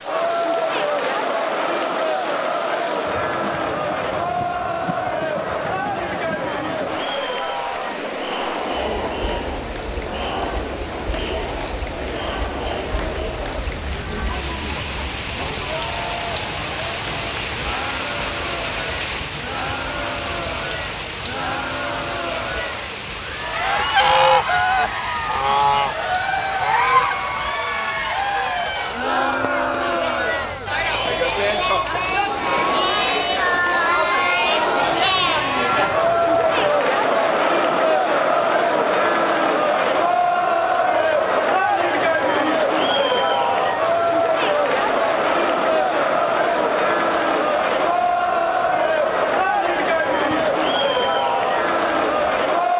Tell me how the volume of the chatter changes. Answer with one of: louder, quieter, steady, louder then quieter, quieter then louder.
quieter then louder.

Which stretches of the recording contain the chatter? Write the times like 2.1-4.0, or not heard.
0.0-52.7.